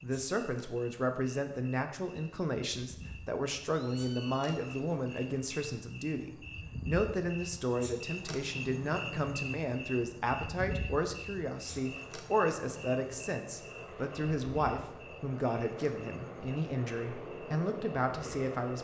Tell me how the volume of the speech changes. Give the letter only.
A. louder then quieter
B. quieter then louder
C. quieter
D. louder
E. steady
E.